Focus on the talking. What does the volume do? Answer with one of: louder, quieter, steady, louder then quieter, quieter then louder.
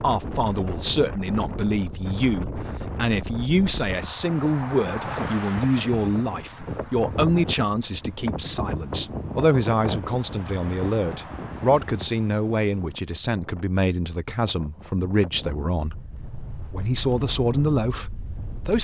steady.